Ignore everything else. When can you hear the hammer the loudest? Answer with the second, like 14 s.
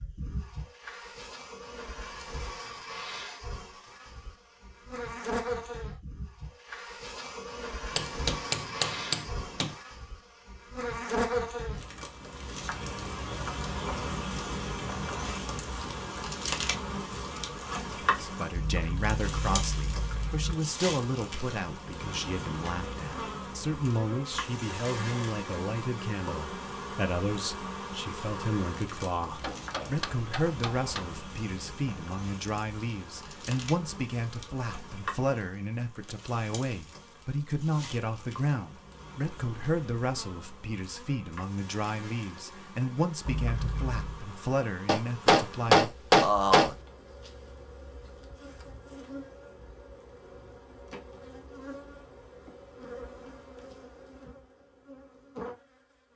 46 s.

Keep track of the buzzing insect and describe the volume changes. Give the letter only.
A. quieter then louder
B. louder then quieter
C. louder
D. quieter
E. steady
D.